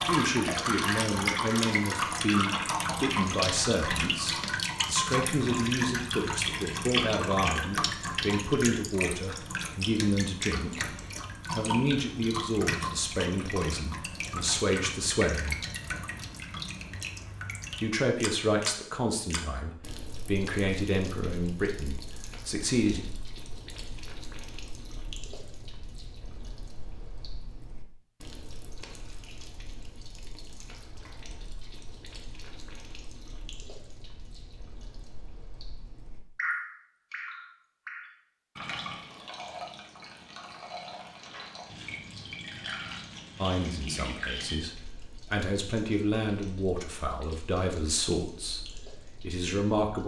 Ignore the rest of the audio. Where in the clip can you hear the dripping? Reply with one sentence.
The dripping can be heard from 0.0 to 50.0 s.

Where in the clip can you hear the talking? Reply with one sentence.
You can hear the talking from 0.1 to 10.8 s, from 11.5 to 15.6 s, from 17.8 to 23.1 s and from 43.4 to 50.0 s.